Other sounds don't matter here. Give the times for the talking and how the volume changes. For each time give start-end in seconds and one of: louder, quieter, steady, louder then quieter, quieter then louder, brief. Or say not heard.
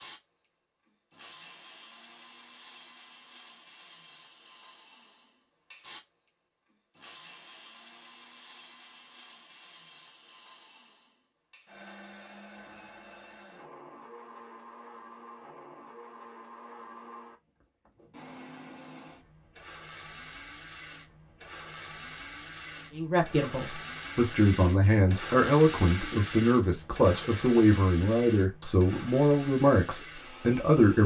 22.9-31.0 steady.